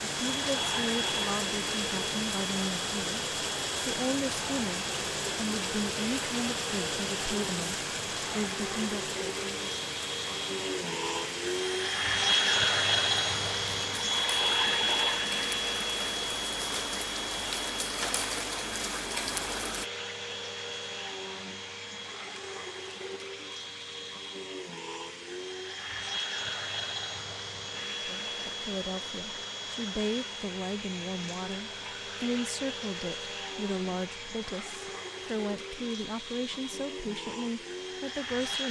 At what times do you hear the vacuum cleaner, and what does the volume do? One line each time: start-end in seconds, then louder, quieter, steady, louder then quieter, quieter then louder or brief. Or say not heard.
0.1-38.6 louder then quieter.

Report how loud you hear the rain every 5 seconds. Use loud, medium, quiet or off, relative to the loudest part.
loud, loud, medium, loud, off, off, off, off.